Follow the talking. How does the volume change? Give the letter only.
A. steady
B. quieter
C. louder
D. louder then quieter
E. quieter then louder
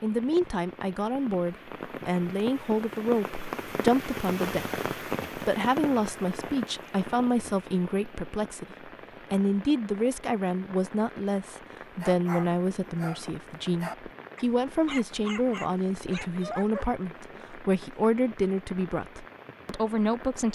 A.